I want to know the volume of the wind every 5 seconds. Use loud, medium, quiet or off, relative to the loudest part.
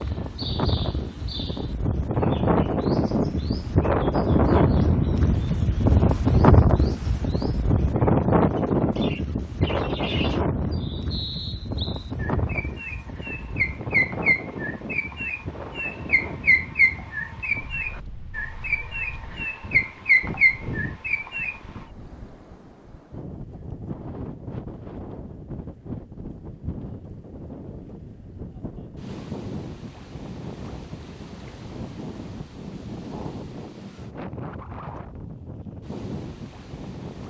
loud, loud, medium, quiet, quiet, quiet, quiet, quiet.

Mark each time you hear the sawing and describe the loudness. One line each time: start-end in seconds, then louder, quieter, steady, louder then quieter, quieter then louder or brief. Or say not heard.
not heard.